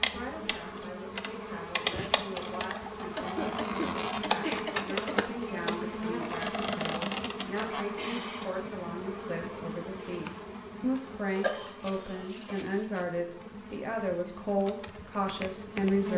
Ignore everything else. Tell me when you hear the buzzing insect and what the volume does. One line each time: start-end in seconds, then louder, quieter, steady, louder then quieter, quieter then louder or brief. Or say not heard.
0.0-16.1 quieter.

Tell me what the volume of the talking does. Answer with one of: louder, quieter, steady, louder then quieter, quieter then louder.
louder.